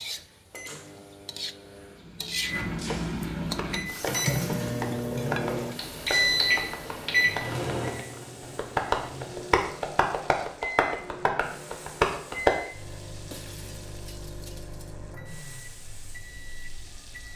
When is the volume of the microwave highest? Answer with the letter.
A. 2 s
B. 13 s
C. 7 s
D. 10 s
C.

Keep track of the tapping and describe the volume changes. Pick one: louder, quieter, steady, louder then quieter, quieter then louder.
louder.